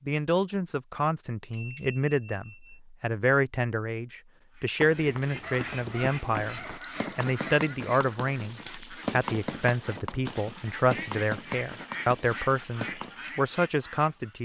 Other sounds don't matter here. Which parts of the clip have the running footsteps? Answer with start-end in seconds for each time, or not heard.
4.8-13.2.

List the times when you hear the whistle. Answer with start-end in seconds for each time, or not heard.
not heard.